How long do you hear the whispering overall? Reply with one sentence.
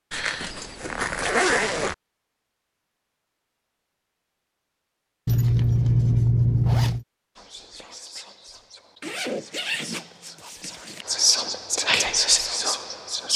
The whispering can be heard for 6 seconds in total.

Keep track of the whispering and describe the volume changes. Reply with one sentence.
The loudness of the whispering goes up.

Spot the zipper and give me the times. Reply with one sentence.
The zipper can be heard from 0.1 to 1.9 s, from 5.2 to 7.0 s and from 9.0 to 11.1 s.